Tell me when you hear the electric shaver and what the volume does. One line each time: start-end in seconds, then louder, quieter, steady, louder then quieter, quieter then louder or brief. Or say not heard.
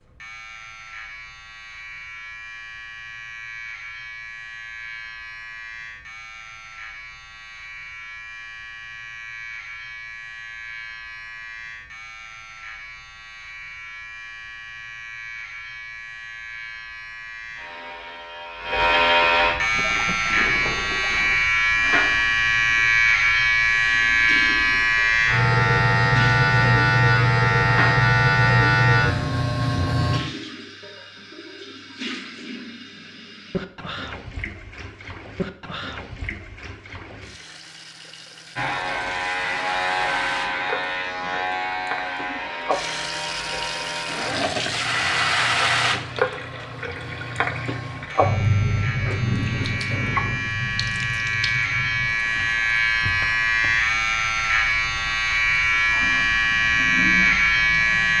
0.0-30.2 louder
38.5-58.1 quieter then louder.